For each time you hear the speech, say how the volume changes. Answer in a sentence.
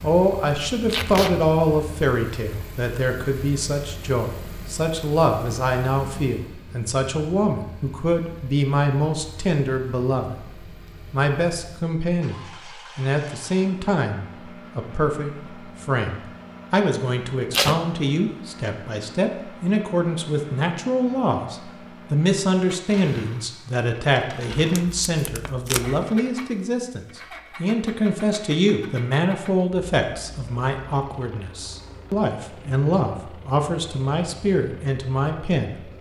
The speech can be heard from 0.0 to 35.9 s, at a steady volume.